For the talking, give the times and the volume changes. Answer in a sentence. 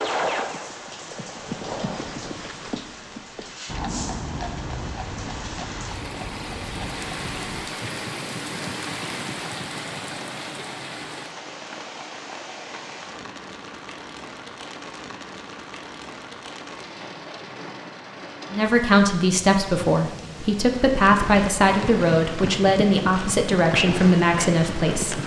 You can hear the talking from 18.5 to 25.2 s, at a steady volume.